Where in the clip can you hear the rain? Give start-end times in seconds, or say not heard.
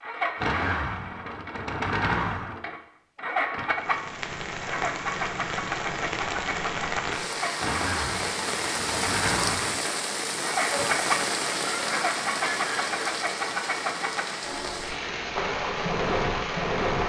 3.8-17.0.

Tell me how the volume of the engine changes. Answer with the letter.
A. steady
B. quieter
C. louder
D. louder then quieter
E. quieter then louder
A.